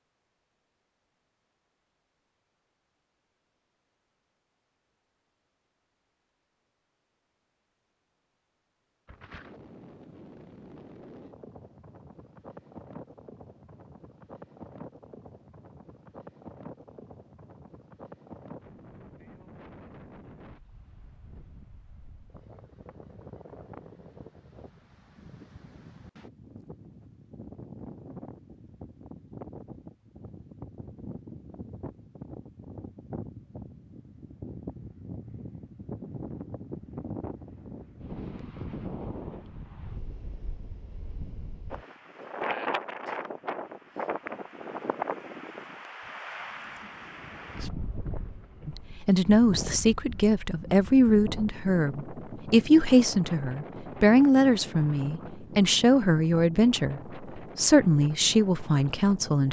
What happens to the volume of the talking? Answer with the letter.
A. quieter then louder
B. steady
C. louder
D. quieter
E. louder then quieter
B.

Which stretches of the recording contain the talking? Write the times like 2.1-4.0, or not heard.
48.6-59.4.